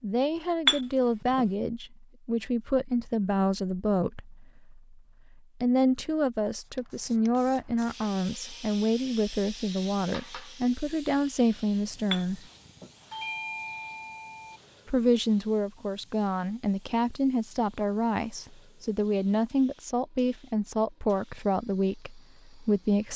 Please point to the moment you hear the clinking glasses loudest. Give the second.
1 s.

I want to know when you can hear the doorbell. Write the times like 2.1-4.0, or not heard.
13.1-14.6.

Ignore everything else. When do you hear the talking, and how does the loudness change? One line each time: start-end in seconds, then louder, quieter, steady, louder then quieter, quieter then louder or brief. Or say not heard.
0.0-12.4 steady
14.8-23.1 steady.